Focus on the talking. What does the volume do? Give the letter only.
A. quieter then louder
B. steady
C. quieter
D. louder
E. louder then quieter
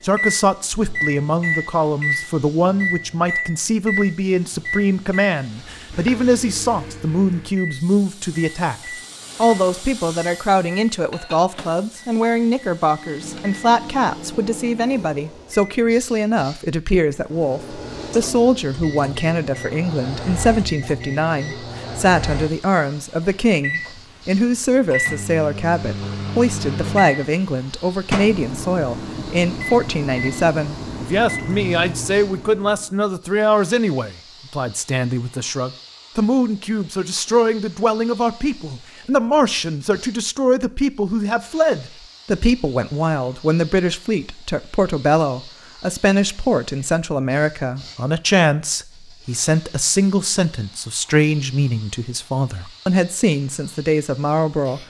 B.